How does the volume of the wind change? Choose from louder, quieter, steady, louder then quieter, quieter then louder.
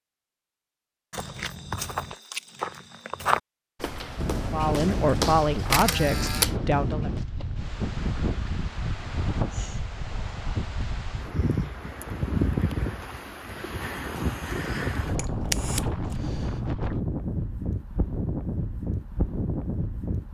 steady.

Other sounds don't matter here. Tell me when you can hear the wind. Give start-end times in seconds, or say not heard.
4.2-20.2.